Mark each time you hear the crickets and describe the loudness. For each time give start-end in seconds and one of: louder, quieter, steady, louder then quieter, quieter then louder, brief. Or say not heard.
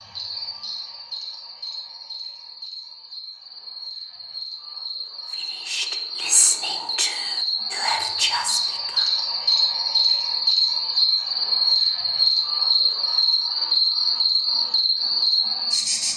0.0-16.1 louder.